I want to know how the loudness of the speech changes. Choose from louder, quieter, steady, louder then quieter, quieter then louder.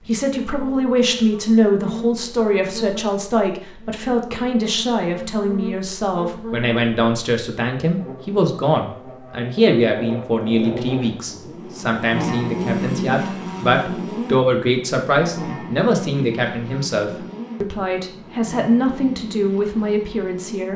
steady.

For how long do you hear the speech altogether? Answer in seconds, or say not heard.
21 s.